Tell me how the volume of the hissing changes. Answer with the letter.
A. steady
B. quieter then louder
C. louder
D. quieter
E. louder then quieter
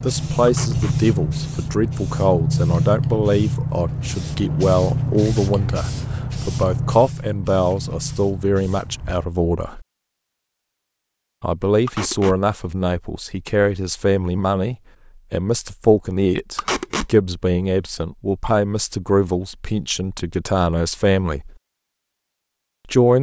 D.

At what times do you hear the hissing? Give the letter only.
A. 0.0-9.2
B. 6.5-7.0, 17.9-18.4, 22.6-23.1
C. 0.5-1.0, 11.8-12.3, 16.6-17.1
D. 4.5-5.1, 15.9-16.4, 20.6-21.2
A.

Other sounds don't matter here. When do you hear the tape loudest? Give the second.
17 s.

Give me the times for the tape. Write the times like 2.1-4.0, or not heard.
0.5-1.0, 11.8-12.3, 16.6-17.1.